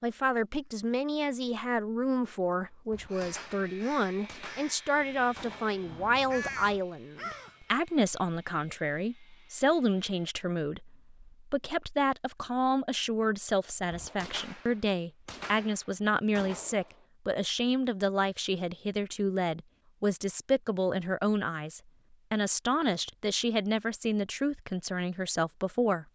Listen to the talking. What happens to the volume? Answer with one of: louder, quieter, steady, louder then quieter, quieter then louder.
steady.